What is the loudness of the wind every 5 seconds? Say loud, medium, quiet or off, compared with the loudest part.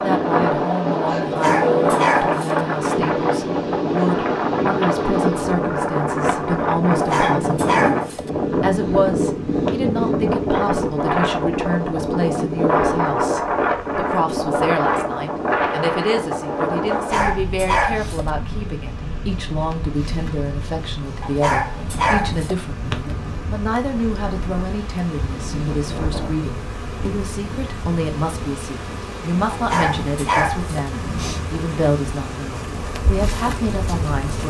loud, loud, loud, medium, quiet, quiet, quiet.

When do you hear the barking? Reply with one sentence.
The barking can be heard from 1.2 to 2.5 s, from 6.9 to 8.2 s, from 16.9 to 18.2 s, from 21.2 to 22.6 s and from 29.5 to 30.8 s.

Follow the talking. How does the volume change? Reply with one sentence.
The volume of the talking stays about the same.